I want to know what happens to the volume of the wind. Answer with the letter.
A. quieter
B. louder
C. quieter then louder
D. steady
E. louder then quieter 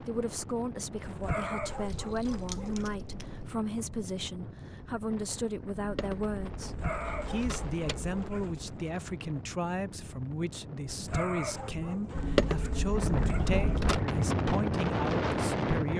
B.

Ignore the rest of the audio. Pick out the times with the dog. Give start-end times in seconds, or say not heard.
1.0-2.9, 6.6-8.7, 10.8-13.8.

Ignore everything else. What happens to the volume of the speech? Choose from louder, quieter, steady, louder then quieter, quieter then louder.
steady.